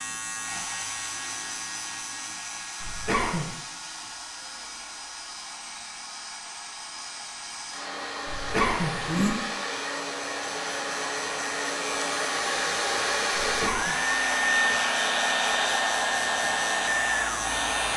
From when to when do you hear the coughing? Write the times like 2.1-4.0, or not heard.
2.8-3.5, 8.2-9.3, 13.3-13.9.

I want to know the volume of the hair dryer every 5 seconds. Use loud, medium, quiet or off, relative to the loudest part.
quiet, medium, loud, loud.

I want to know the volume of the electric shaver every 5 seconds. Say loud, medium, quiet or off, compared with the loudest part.
medium, quiet, loud, loud.